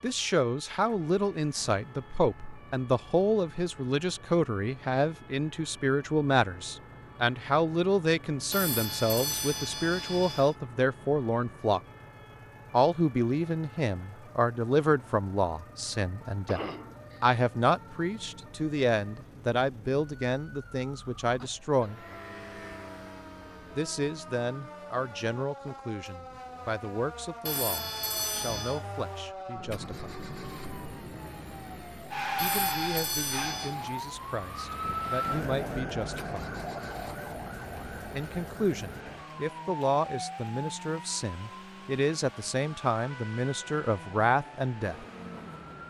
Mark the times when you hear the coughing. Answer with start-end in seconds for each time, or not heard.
16.4-17.2.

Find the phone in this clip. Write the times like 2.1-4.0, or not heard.
8.5-10.6, 27.4-28.8, 32.4-33.8.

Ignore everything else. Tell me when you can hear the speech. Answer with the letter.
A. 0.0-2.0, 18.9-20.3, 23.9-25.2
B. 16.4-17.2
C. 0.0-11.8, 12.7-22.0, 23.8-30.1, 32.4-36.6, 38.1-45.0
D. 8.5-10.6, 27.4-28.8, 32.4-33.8
C.